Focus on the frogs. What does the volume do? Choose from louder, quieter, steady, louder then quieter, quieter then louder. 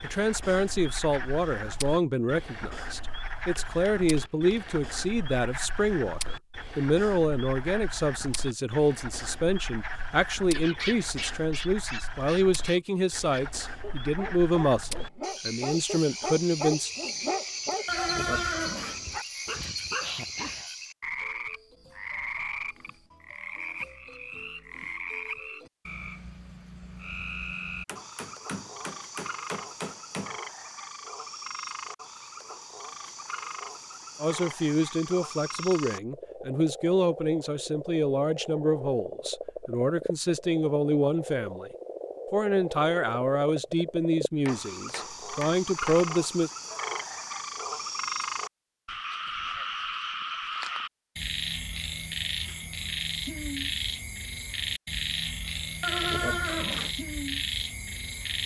louder.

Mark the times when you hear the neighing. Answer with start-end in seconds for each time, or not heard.
17.9-19.2, 55.8-57.0.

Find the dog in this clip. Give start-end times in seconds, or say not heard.
10.5-20.6.